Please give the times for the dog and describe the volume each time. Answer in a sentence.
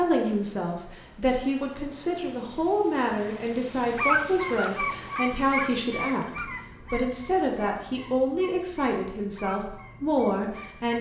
The dog can be heard from 3.8 to 10.9 s, getting quieter.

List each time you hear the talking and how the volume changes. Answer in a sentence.
You can hear the talking from 0.0 to 10.9 s, at a steady volume.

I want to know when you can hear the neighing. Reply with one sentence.
The neighing can't be heard in this clip.